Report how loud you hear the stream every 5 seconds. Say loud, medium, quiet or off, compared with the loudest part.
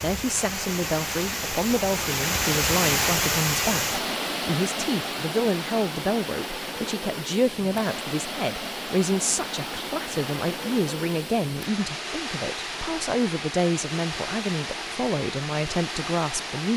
loud, medium, medium, medium.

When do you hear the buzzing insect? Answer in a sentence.
You can't hear the buzzing insect here.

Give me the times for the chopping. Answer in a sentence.
The chopping can't be heard in this clip.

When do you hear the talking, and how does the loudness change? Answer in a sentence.
The talking can be heard from 0.0 to 16.7 s, at a steady volume.